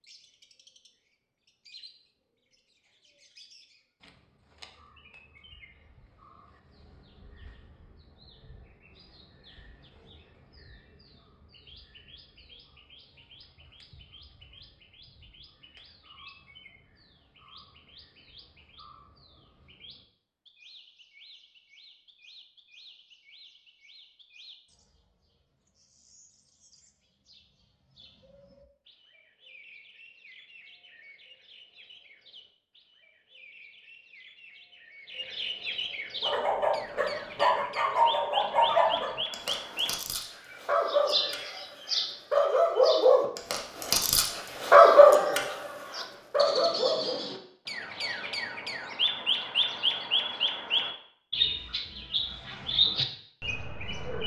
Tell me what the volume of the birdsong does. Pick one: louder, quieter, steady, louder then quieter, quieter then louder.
louder.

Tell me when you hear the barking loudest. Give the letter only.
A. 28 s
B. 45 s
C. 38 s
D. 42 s
B.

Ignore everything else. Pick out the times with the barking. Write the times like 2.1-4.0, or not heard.
36.2-47.2.